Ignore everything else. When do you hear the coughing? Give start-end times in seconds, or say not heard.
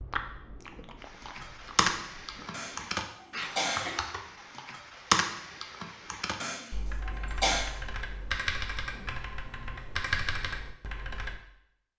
2.5-4.0, 6.4-7.7.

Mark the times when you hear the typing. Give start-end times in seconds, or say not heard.
1.0-11.4.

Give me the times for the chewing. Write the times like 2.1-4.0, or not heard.
0.0-2.5.